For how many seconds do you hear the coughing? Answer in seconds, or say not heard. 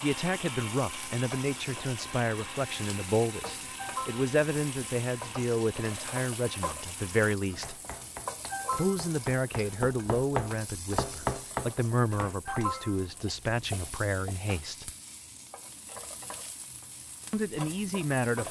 2 s.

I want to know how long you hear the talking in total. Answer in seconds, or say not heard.
15 s.